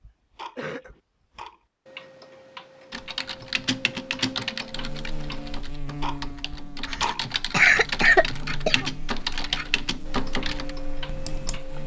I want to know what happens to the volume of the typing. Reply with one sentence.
The loudness of the typing goes down, then up.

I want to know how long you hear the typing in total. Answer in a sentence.
You can hear the typing for 9 seconds altogether.